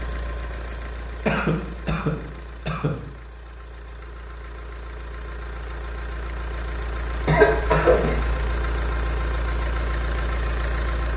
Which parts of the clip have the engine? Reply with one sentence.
The engine can be heard from 0.0 to 11.1 s.